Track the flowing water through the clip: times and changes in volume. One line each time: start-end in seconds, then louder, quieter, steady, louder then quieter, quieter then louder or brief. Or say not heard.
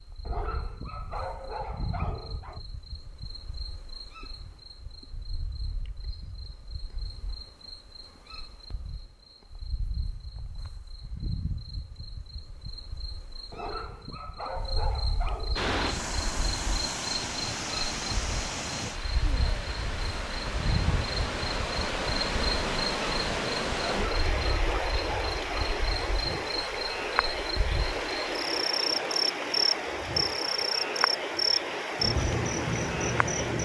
15.6-33.6 steady.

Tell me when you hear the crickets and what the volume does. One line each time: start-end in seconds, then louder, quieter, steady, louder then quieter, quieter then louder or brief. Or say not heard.
0.0-33.6 louder.